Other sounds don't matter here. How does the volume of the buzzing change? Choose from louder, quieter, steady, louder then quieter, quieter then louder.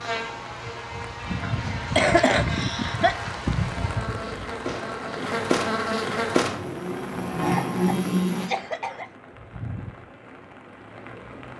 louder.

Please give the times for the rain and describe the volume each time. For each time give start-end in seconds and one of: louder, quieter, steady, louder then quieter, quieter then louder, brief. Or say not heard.
0.0-11.5 quieter.